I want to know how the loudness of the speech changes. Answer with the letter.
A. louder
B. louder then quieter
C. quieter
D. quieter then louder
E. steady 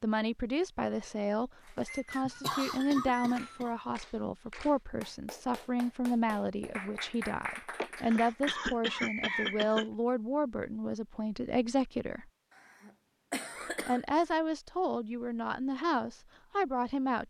E.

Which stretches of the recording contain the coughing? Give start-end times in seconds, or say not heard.
2.2-3.8, 7.8-9.9, 12.6-14.2.